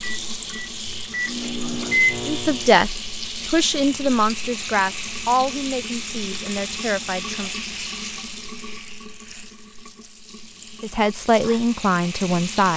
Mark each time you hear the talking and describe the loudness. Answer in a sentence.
The talking can be heard from 2.2 to 7.5 s, getting quieter; and briefly from 10.8 to 12.7 s.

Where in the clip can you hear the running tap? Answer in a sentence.
The running tap can be heard from 0.0 to 12.7 s.